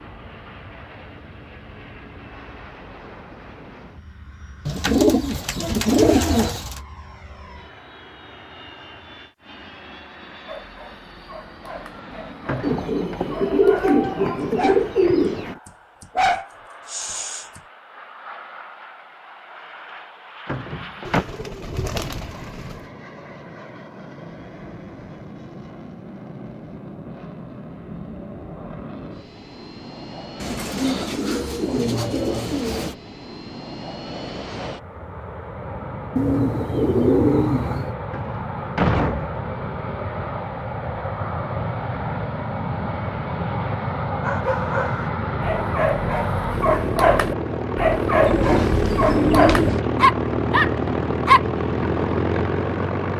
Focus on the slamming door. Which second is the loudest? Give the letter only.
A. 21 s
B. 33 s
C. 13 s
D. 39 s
D.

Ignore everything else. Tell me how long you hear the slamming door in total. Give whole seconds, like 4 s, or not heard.
3 s.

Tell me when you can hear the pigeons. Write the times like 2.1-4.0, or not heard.
4.7-6.8, 12.6-15.6, 21.1-22.9, 30.4-33.0, 36.1-38.0, 48.2-49.8.